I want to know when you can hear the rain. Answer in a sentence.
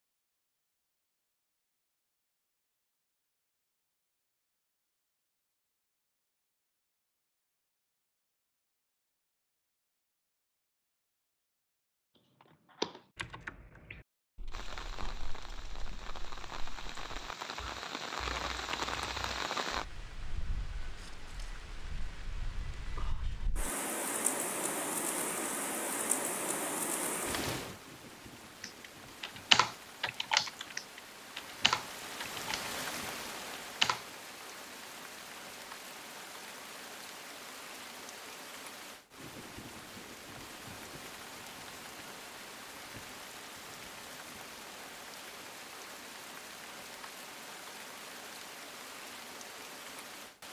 You can hear the rain from 14.5 to 50.4 s.